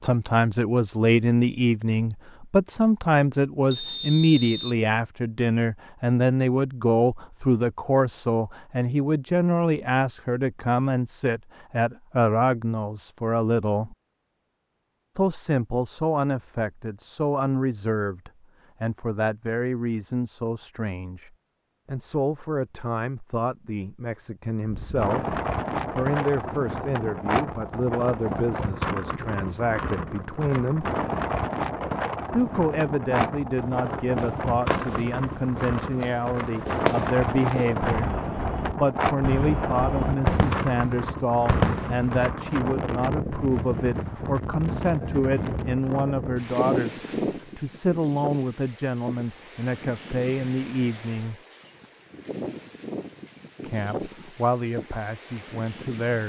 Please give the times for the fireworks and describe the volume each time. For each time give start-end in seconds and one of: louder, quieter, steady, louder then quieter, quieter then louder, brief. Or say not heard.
33.5-42.2 louder.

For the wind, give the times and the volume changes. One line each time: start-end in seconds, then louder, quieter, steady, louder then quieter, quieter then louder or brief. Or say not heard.
24.6-56.2 quieter.